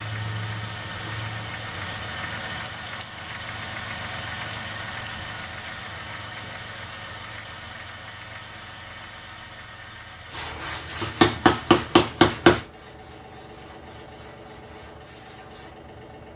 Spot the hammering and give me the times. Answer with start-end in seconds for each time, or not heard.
11.0-12.6.